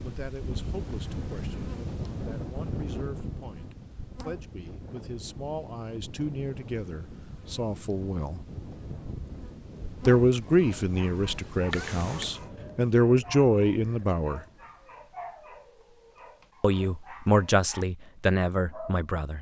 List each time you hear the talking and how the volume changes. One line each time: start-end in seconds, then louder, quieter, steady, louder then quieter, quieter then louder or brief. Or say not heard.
0.0-8.4 louder
10.1-14.4 quieter then louder
16.6-19.3 brief.